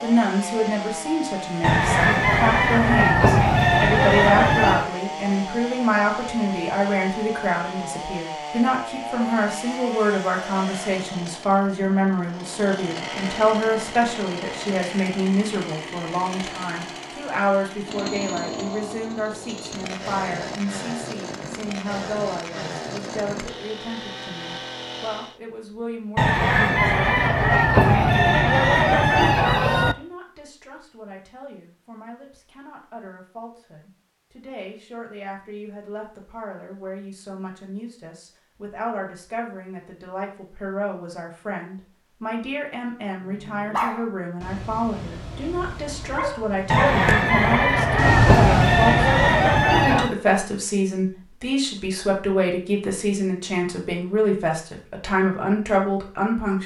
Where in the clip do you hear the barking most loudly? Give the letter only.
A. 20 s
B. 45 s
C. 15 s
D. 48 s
D.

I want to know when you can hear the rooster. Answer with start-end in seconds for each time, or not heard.
1.6-4.9, 26.1-29.9, 46.7-50.1.